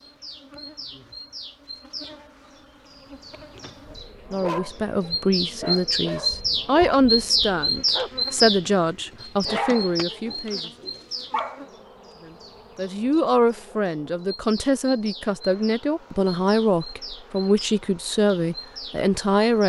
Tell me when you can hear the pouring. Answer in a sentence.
You can't hear the pouring here.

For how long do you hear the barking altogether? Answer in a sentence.
The barking can be heard for 7 seconds in total.